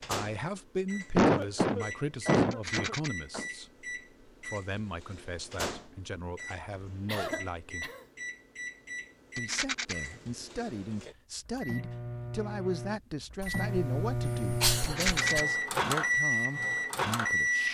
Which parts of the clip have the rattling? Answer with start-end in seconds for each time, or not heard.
2.5-3.1, 9.3-9.9, 14.8-15.4.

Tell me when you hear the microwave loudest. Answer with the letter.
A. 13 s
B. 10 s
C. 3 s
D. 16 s
D.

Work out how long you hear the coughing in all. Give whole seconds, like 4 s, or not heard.
5 s.